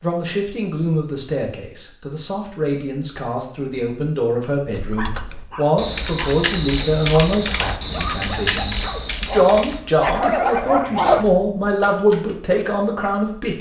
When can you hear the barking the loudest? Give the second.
11 s.